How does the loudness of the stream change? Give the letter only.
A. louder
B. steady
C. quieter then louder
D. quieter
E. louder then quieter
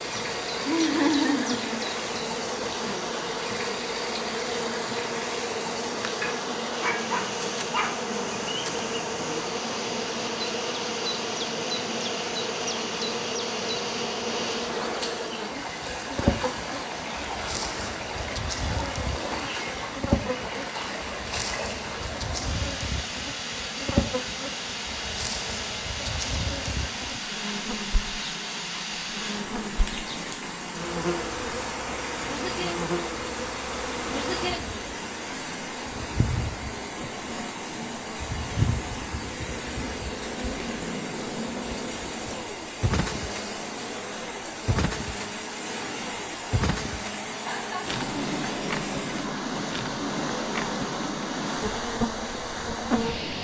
B.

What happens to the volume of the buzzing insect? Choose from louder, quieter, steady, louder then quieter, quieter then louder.
steady.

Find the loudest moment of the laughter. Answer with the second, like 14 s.
1 s.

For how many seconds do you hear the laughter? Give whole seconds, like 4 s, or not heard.
2 s.